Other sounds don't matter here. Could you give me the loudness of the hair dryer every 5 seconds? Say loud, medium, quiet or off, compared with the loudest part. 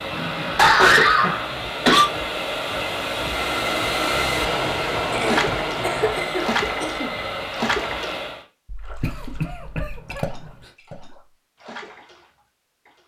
loud, loud, off.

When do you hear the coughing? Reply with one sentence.
The coughing can be heard from 0.1 to 2.0 s, from 5.1 to 7.1 s and from 9.0 to 10.6 s.